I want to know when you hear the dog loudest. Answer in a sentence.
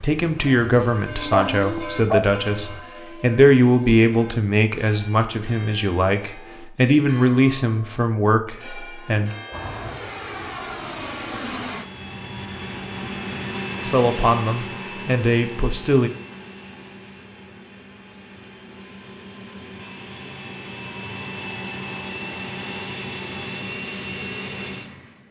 The loudest moment of the dog is at 2 seconds.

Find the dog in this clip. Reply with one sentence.
You can hear the dog from 0.7 to 2.4 s.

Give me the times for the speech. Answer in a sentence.
You can hear the speech from 0.0 to 9.3 s and from 13.8 to 16.1 s.